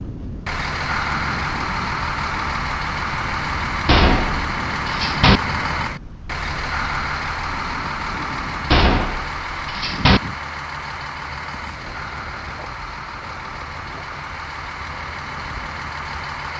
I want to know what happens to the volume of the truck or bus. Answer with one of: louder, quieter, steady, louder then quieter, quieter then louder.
quieter.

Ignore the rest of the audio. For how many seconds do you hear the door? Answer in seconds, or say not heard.
3 s.